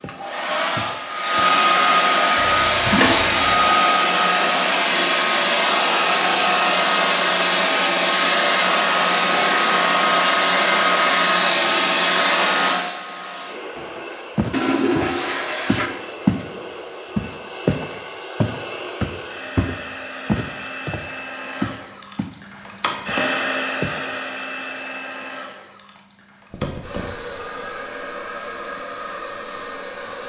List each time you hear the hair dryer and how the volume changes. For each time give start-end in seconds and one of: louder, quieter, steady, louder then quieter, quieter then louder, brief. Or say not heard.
0.0-30.2 quieter.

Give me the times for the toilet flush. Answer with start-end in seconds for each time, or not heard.
2.4-3.6, 14.5-15.9, 26.5-27.4.